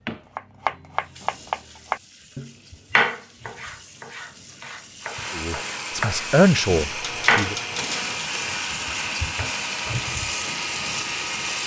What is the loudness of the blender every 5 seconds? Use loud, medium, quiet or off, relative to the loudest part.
off, loud, loud.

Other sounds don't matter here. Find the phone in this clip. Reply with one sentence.
You can hear the phone from 7.0 to 8.2 s.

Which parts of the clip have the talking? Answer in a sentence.
The talking can be heard from 5.3 to 7.5 s.